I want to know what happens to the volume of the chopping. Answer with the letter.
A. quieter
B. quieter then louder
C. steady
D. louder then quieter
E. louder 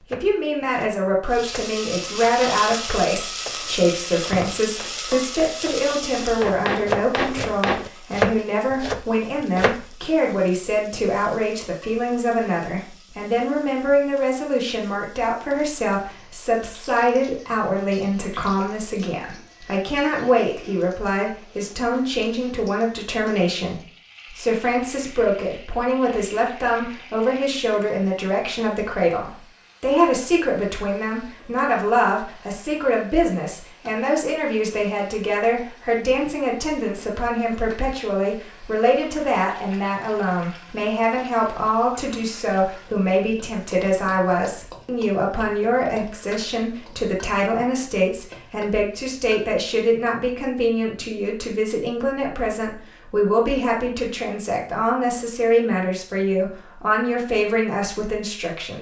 E.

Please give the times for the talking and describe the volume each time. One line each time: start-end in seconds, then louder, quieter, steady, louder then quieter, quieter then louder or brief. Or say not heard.
0.0-58.7 steady.